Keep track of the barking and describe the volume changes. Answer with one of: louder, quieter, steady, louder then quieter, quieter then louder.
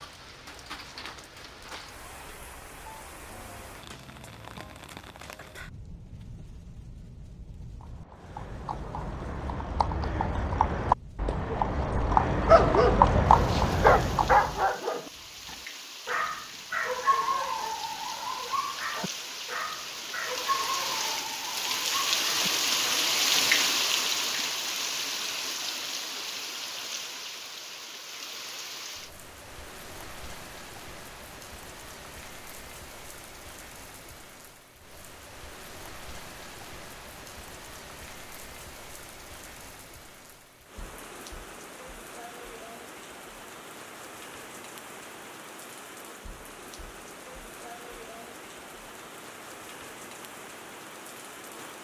quieter.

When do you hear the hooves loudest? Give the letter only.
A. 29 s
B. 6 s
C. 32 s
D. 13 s
D.